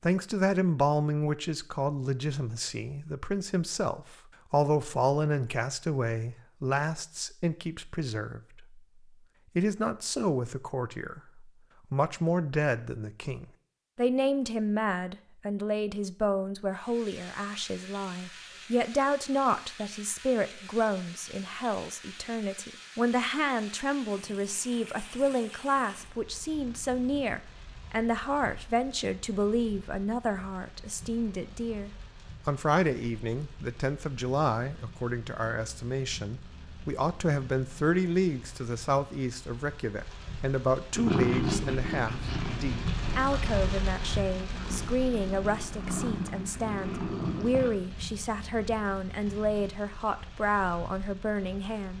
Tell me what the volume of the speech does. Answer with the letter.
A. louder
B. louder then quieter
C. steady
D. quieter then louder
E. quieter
C.